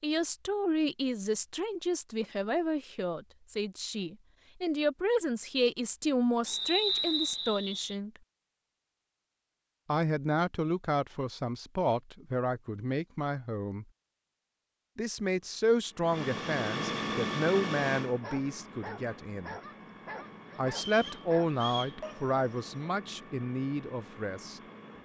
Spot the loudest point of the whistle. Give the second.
7 s.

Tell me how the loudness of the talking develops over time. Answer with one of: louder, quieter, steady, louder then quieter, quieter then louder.
steady.